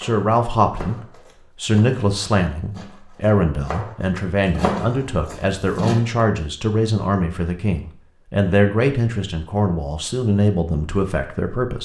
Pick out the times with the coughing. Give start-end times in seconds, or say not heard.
not heard.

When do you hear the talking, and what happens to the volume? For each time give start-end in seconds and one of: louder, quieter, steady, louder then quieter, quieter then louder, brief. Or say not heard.
0.0-11.8 steady.